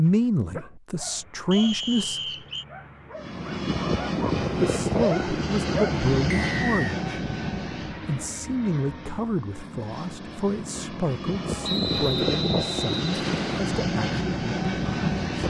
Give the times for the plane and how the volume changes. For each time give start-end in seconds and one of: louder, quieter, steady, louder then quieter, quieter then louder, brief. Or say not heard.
3.1-15.4 quieter then louder.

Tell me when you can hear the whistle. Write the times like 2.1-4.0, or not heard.
1.5-2.6, 6.3-7.0, 11.6-13.6.